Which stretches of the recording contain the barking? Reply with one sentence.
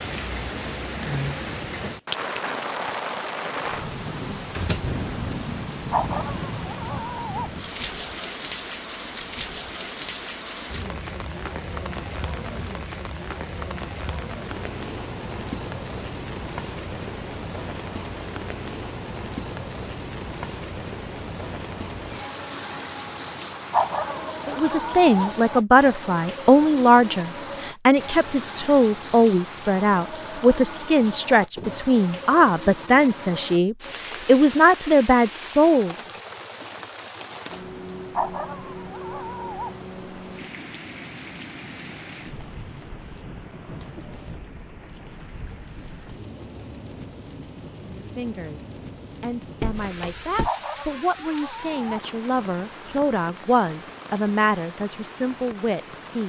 You can hear the barking from 5.9 to 7.5 s, from 23.7 to 25.4 s, from 38.1 to 39.8 s and from 50.4 to 52.0 s.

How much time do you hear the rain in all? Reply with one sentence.
The rain can be heard for 56 seconds in total.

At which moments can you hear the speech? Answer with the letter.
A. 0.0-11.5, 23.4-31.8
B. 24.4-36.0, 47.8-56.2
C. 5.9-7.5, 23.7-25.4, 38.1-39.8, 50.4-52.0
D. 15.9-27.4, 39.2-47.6
B.